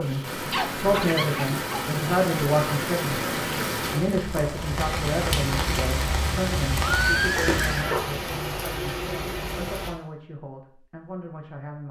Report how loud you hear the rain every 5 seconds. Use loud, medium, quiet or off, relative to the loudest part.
loud, loud, off.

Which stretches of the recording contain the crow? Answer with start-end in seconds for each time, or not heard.
not heard.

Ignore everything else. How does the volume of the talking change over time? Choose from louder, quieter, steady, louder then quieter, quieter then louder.
quieter.